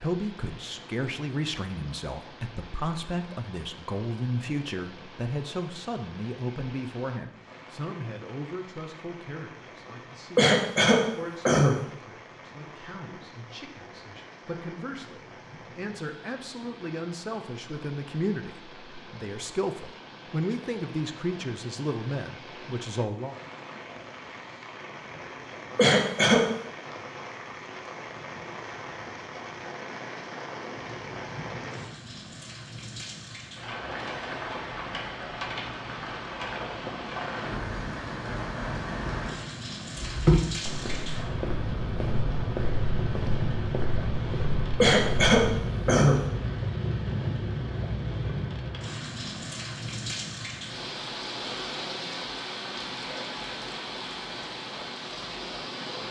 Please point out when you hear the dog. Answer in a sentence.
The dog can't be heard in this clip.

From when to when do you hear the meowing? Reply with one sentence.
The meowing can't be heard in this clip.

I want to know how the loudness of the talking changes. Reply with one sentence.
The loudness of the talking goes down, then up.